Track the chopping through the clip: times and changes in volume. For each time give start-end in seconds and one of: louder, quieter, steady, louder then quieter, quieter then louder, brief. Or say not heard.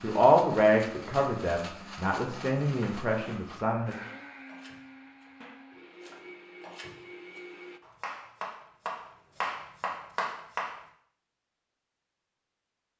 2.6-10.8 louder.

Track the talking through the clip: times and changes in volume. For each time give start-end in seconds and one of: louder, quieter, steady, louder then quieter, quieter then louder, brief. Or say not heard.
0.0-4.0 quieter.